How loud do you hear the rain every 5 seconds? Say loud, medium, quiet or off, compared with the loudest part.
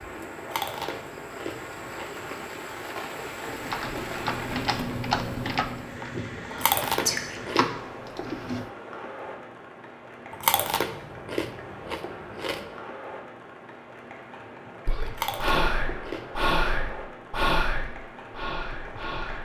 loud, loud, medium, medium.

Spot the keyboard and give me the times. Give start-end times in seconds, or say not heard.
3.5-8.7.